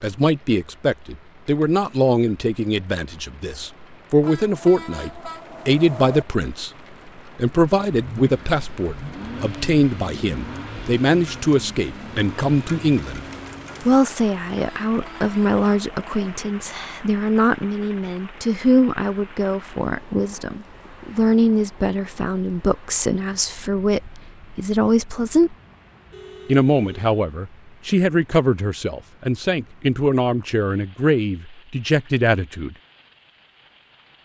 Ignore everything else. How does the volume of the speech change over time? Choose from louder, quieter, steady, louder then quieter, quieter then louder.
steady.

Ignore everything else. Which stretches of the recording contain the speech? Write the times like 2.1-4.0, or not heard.
0.0-6.7, 7.3-13.2, 13.8-25.6, 26.4-32.8.